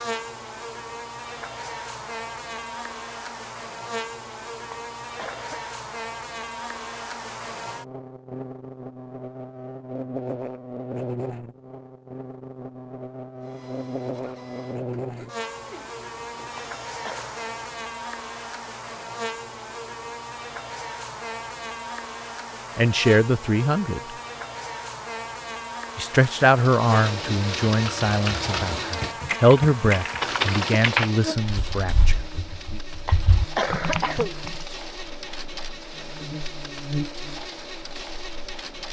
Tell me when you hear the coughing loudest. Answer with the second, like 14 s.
34 s.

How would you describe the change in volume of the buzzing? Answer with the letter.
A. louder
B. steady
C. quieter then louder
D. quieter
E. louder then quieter
B.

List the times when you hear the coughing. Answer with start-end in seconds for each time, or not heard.
4.7-5.7, 16.6-17.4, 33.0-34.4.